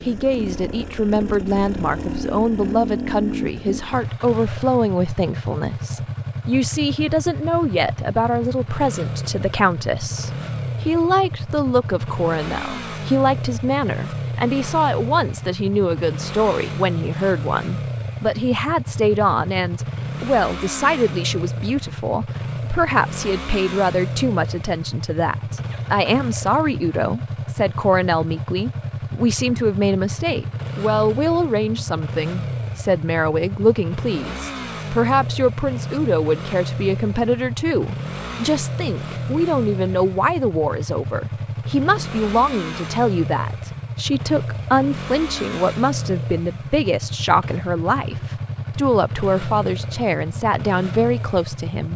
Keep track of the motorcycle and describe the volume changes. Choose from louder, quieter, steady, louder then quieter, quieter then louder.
steady.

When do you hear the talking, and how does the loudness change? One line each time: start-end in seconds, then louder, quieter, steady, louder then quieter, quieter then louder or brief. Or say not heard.
0.0-51.9 steady.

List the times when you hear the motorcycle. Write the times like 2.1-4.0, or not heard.
0.0-51.9.